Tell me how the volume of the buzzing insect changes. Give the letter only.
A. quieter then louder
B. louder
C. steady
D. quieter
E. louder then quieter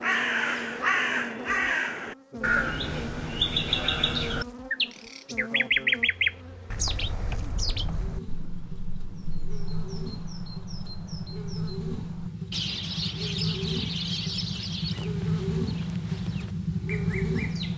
B.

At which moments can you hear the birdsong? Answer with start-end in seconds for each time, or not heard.
0.0-17.7.